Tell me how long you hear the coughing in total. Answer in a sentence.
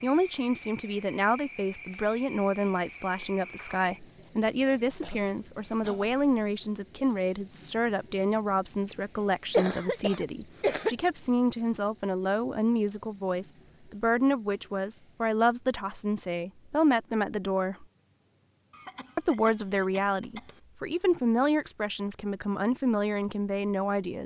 The coughing can be heard for 5 seconds in total.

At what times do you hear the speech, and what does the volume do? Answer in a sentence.
You can hear the speech from 0.0 to 17.9 s, at a steady volume; and from 19.1 to 24.2 s, at a steady volume.